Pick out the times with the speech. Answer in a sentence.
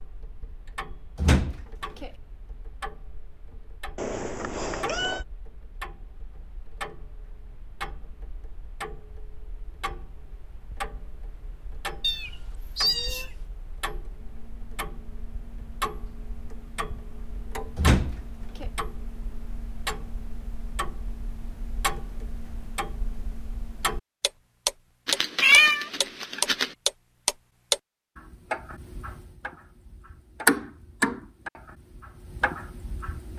You can't hear the speech here.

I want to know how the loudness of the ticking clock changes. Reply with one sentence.
The volume of the ticking clock goes up.